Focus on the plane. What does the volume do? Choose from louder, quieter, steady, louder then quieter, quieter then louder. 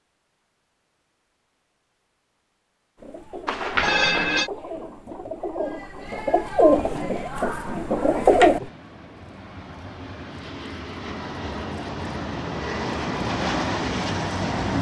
louder.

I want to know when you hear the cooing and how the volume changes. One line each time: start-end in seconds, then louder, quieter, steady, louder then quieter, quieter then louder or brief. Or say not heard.
3.0-8.7 louder.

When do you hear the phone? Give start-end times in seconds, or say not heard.
3.5-4.5.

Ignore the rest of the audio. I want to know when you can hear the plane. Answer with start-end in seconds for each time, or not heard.
7.3-14.7.